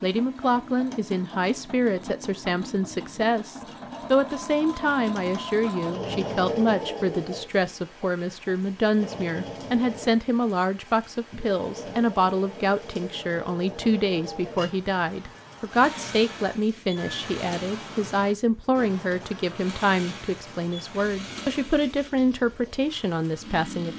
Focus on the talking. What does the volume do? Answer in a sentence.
The loudness of the talking stays about the same.